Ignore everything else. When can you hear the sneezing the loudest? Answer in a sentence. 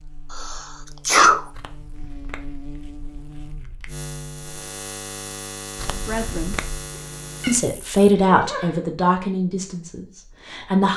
The loudest moment of the sneezing is at 1 second.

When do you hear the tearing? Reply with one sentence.
The tearing can be heard from 1.5 to 4.0 s and from 5.8 to 6.8 s.